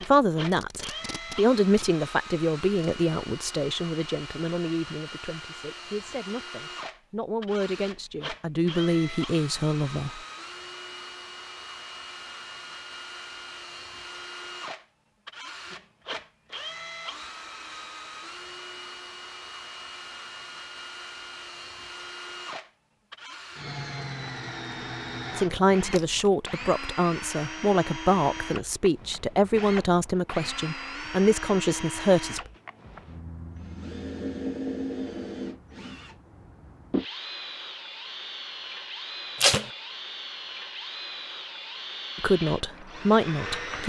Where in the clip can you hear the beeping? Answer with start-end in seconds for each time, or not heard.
not heard.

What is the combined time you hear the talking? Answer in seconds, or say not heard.
19 s.